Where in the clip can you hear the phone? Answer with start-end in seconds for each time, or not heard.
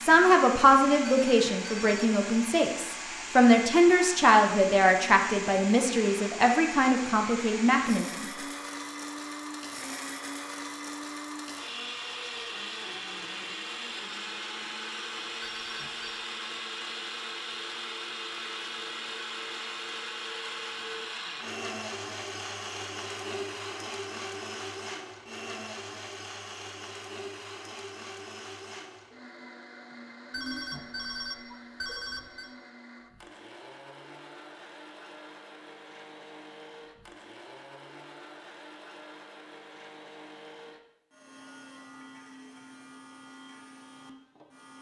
1.0-2.0, 15.4-16.2, 30.3-32.5.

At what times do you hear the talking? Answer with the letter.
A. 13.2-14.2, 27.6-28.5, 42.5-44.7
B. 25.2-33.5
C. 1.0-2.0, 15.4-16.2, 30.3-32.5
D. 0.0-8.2
D.